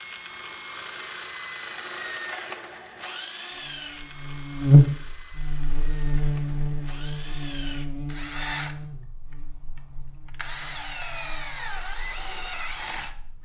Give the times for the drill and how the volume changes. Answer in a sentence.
The drill can be heard from 0.0 to 13.4 s, getting quieter then louder.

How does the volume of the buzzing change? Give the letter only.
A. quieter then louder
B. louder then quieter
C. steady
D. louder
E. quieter
E.